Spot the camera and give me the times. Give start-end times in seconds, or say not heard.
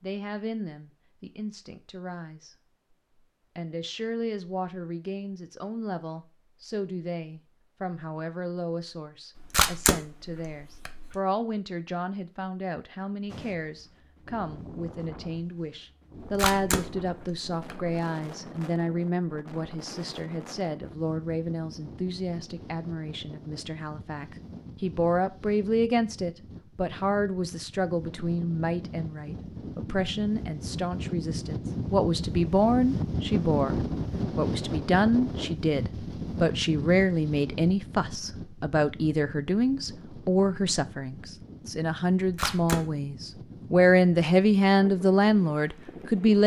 9.3-11.2, 16.2-18.0, 42.2-42.8.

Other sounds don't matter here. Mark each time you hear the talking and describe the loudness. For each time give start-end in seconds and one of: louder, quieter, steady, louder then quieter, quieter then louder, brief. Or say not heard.
0.0-2.5 brief
3.5-46.4 louder.